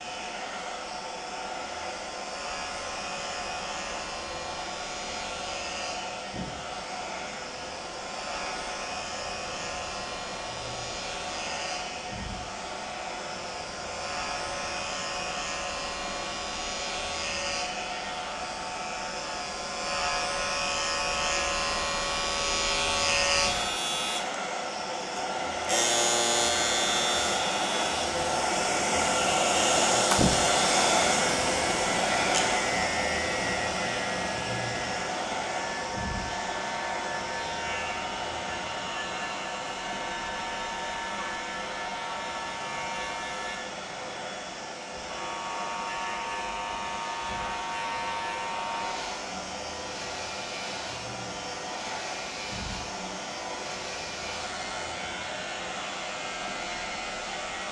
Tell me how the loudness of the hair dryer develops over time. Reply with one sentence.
The loudness of the hair dryer goes up, then down.